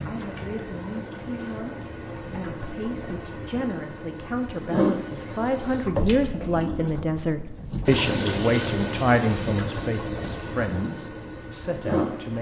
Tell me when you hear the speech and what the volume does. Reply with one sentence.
The speech can be heard from 0.0 to 12.3 s, getting louder then quieter.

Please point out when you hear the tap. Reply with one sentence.
You can hear the tap from 0.0 to 12.3 s.